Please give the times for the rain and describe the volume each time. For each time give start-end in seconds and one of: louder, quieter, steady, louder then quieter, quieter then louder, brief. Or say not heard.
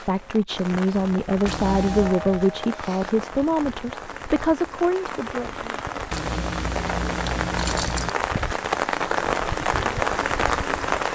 0.0-11.0 louder.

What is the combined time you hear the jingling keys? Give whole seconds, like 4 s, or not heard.
3 s.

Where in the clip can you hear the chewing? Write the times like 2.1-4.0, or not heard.
not heard.